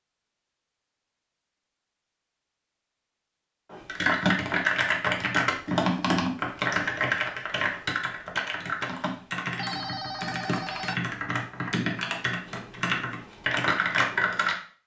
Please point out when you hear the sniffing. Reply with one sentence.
You can't hear the sniffing here.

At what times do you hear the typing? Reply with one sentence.
The typing can be heard from 3.7 to 14.6 s.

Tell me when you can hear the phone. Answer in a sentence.
You can hear the phone from 9.6 to 11.1 s.